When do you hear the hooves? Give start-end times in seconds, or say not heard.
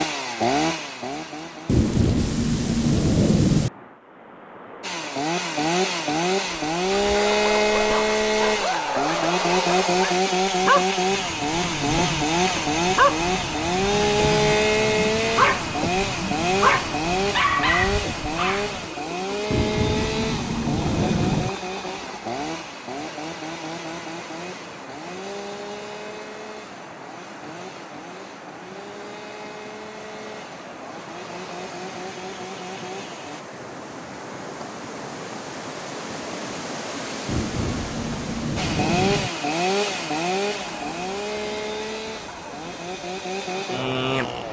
not heard.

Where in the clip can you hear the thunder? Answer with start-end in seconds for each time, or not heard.
1.6-3.7, 19.5-21.5, 37.2-39.3.